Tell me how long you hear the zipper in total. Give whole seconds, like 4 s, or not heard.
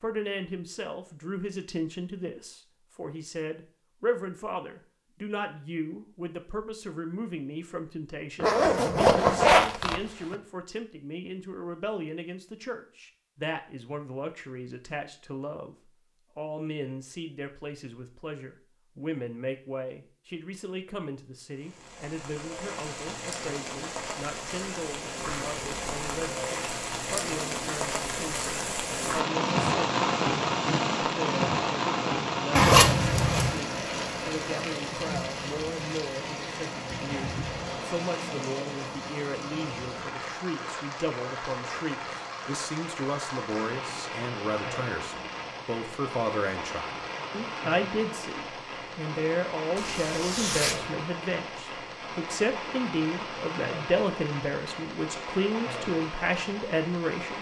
4 s.